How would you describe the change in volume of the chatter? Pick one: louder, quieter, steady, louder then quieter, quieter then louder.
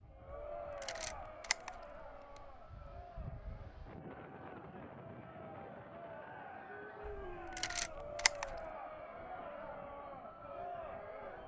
quieter then louder.